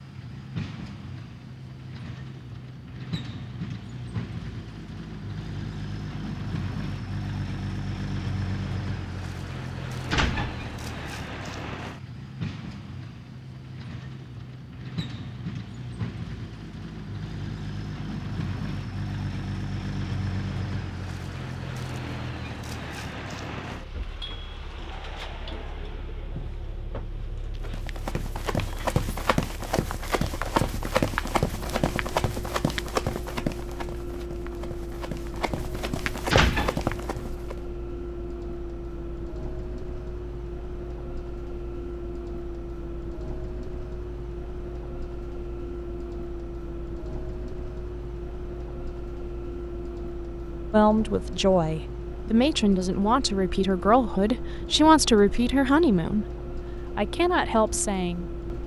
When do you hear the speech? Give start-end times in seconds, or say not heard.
50.7-56.2, 57.0-58.6.